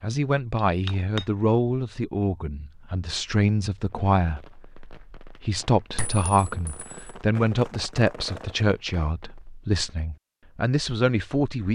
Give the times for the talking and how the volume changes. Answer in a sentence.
The talking can be heard from 0.0 to 11.6 s, at a steady volume.